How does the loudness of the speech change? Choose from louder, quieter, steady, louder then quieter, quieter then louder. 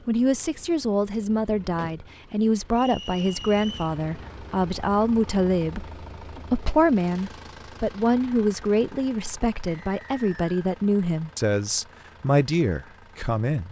steady.